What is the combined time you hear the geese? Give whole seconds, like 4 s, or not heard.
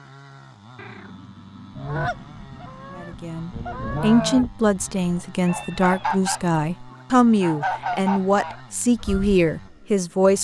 8 s.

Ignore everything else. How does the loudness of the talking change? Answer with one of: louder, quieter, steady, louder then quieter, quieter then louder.
steady.